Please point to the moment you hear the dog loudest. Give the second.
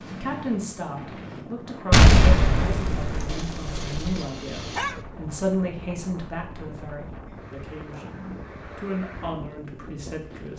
5 s.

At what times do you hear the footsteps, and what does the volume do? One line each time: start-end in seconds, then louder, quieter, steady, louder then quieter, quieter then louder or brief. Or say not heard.
not heard.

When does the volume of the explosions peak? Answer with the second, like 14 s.
2 s.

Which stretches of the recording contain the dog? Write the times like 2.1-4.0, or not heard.
3.2-5.0.